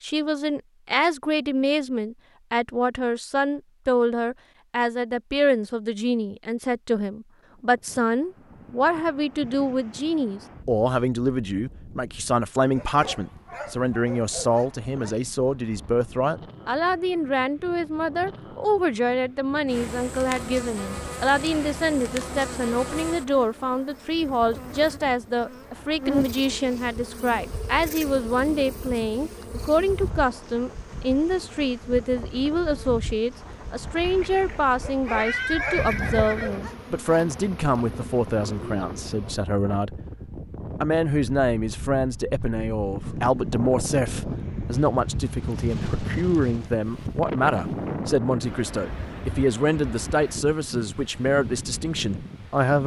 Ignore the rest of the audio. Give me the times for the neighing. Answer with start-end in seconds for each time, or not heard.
34.0-36.6.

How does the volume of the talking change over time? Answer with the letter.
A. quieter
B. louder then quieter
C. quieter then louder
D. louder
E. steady
E.